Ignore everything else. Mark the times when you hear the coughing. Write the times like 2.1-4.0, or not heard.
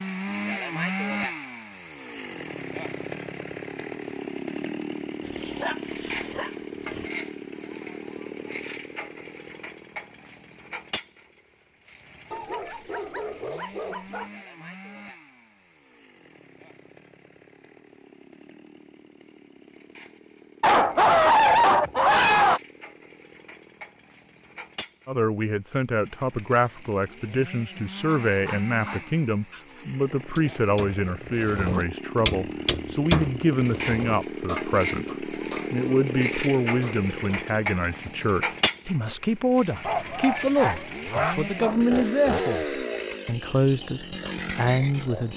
not heard.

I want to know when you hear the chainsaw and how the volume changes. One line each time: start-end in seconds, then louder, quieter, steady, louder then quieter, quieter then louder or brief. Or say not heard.
0.0-45.3 quieter then louder.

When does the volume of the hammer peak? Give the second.
33 s.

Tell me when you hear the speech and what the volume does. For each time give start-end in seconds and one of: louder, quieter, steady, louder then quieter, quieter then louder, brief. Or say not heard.
25.1-45.3 steady.